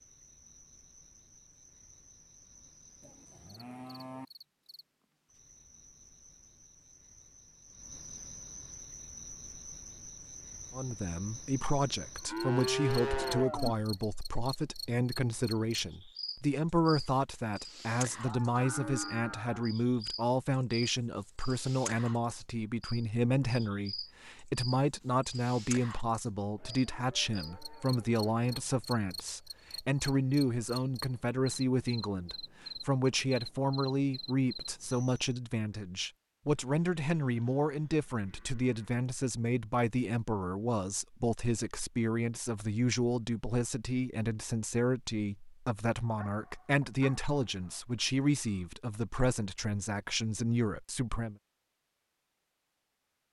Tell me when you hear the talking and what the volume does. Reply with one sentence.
You can hear the talking from 10.7 to 51.4 s, at a steady volume.